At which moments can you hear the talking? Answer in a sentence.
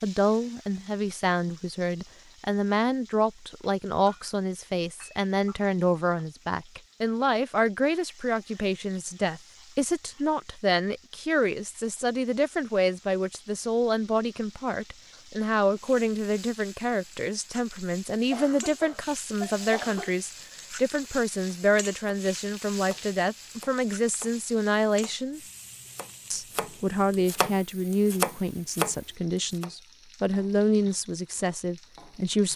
The talking can be heard from 0.0 to 25.4 s and from 26.3 to 32.5 s.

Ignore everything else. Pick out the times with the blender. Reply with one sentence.
You can't hear the blender here.